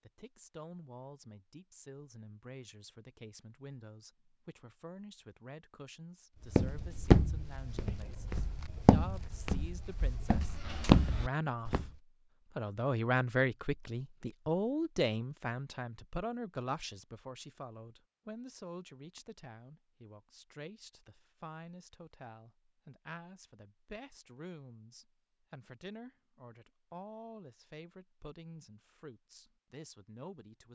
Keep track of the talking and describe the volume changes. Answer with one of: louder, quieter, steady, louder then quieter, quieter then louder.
louder then quieter.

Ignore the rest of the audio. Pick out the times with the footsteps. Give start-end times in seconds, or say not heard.
6.5-11.9.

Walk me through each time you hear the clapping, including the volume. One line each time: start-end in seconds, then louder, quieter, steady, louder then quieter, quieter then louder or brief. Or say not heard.
not heard.